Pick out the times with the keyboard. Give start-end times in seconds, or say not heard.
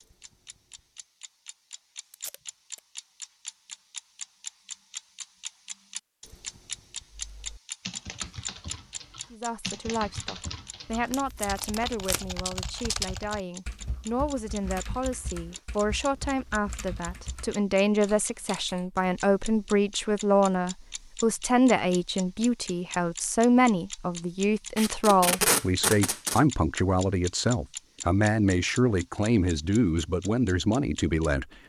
7.1-18.9.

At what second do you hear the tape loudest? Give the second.
25 s.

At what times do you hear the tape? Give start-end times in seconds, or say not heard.
2.1-2.8, 10.9-12.4, 24.8-26.4.